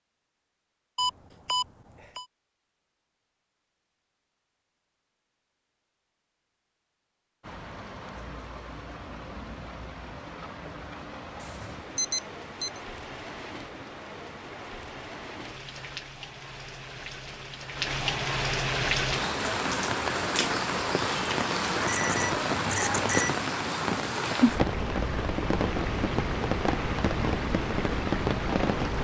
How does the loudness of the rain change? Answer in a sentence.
The volume of the rain goes up.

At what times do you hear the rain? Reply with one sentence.
You can hear the rain from 7.4 to 28.9 s.